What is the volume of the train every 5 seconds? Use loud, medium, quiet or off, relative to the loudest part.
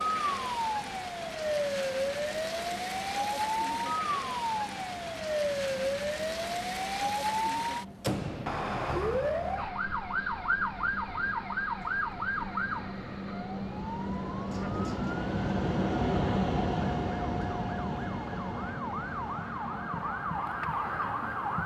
quiet, quiet, medium, loud, quiet.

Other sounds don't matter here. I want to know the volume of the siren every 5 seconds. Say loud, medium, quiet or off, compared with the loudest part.
loud, loud, loud, medium, loud.